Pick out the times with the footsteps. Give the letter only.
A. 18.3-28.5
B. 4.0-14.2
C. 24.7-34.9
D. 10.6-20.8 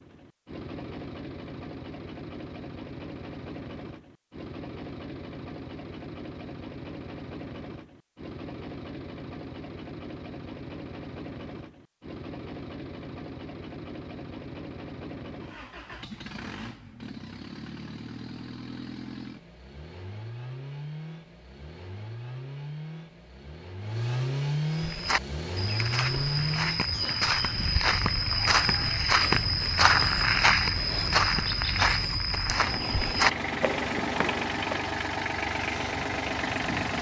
C.